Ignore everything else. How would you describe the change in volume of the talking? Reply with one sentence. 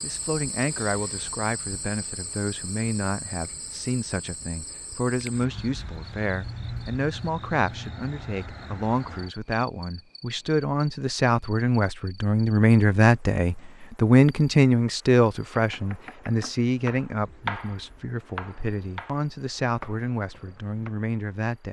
The loudness of the talking goes up, then down.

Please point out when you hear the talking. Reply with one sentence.
The talking can be heard from 0.0 to 21.6 s.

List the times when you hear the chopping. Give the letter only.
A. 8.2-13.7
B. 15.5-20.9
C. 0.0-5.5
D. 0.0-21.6
B.